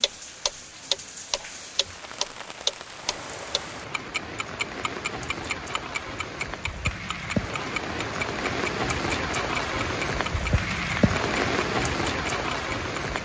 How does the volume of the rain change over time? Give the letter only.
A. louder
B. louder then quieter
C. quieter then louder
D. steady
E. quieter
A.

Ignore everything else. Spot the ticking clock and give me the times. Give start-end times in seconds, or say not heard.
0.0-13.2.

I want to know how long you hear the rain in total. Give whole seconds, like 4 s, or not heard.
13 s.